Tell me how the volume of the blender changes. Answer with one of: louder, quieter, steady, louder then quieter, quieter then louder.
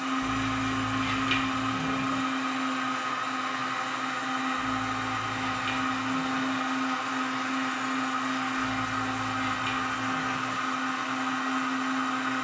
steady.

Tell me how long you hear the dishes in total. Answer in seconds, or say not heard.
6 s.